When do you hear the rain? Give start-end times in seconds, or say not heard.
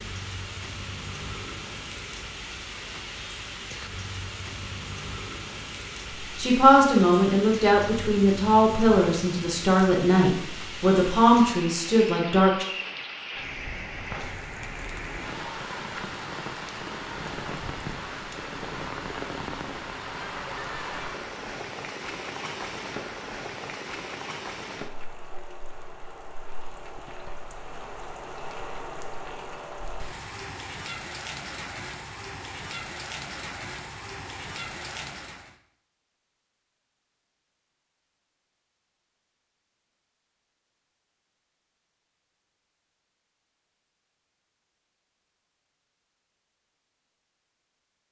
0.0-35.5.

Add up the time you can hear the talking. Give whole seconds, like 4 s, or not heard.
6 s.